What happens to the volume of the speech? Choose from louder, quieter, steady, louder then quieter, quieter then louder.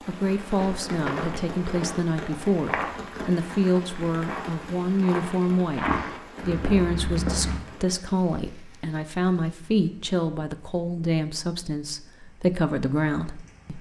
steady.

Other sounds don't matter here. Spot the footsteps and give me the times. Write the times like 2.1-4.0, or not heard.
0.6-7.6.